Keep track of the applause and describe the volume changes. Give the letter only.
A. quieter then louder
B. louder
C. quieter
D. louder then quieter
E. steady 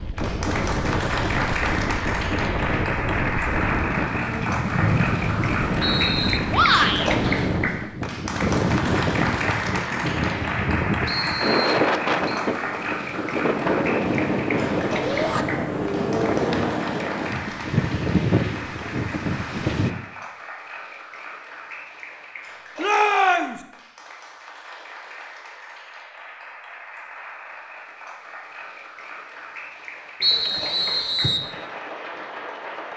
C.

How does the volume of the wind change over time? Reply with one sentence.
The volume of the wind stays about the same.